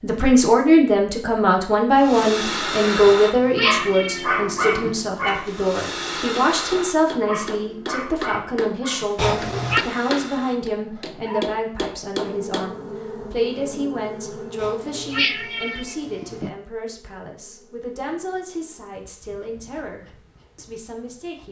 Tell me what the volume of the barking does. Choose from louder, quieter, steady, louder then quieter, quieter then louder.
quieter.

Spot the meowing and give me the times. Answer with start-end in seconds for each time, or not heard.
3.0-5.0, 9.2-9.8, 14.6-16.5.